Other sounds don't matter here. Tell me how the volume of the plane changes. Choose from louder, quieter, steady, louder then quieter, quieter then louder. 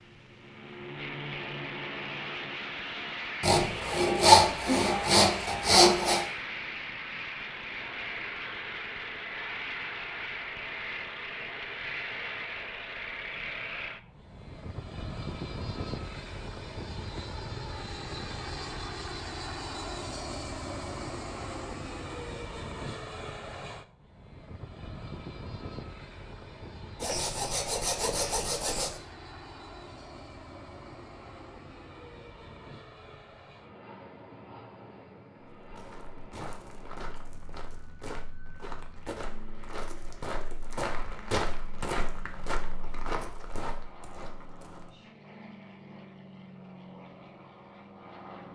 quieter.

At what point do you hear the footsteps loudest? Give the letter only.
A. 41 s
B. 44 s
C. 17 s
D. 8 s
A.